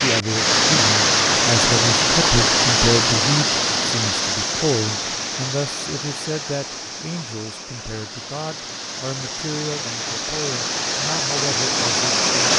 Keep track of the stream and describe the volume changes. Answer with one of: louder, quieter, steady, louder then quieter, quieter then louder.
quieter then louder.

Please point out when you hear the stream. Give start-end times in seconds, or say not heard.
0.0-12.5.